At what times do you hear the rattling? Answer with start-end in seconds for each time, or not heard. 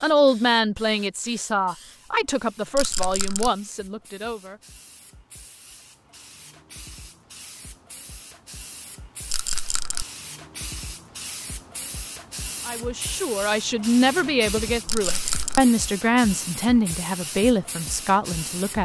2.8-3.5, 9.3-10.1, 14.8-15.6.